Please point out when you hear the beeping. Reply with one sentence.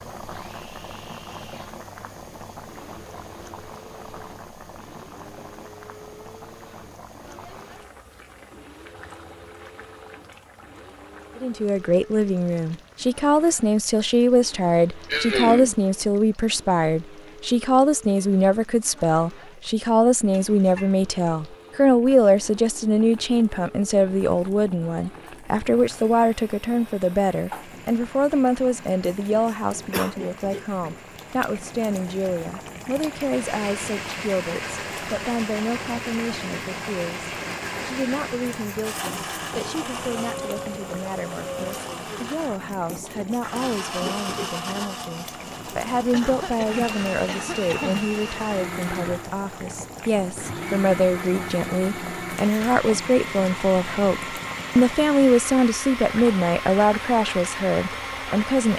You can't hear the beeping here.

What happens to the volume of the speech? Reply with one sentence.
The loudness of the speech goes down, then up.